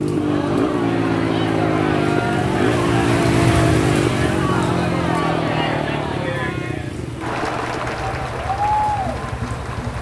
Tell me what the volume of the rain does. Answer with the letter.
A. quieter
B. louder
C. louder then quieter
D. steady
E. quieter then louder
C.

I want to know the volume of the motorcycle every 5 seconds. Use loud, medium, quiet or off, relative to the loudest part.
loud, medium.